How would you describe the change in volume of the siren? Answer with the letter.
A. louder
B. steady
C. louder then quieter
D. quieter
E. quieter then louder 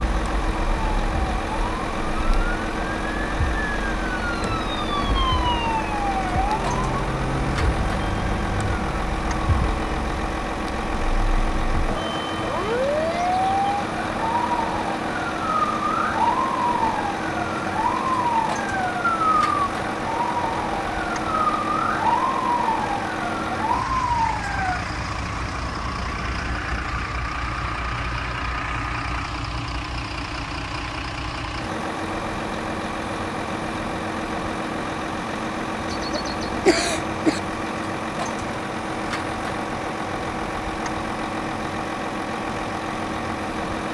A.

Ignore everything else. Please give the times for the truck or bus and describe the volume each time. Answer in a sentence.
The truck or bus can be heard from 0.0 to 43.8 s, at a steady volume.